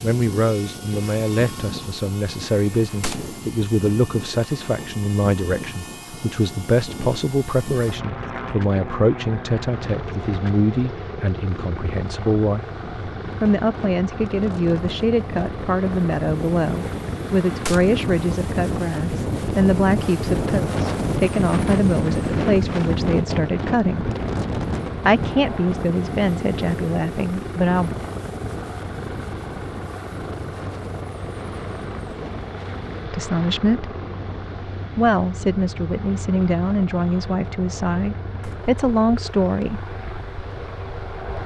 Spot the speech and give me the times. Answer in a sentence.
You can hear the speech from 0.0 to 12.7 s, from 13.4 to 24.1 s, from 25.1 to 27.9 s, from 33.1 to 33.9 s and from 35.0 to 39.8 s.